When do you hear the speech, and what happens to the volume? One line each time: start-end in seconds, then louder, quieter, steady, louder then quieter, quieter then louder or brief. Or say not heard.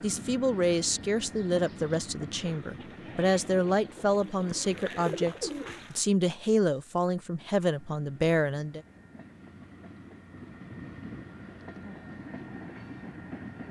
0.0-8.8 steady.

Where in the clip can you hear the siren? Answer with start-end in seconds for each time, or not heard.
not heard.